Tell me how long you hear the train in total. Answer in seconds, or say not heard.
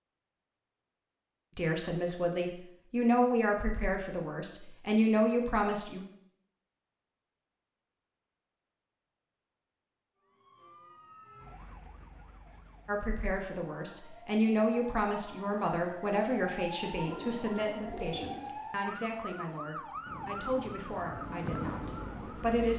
3 s.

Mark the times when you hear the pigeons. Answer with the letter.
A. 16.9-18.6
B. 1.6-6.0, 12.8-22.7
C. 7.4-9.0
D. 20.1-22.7
A.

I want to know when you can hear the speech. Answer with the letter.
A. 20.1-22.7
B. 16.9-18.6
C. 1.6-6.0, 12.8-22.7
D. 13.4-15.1
C.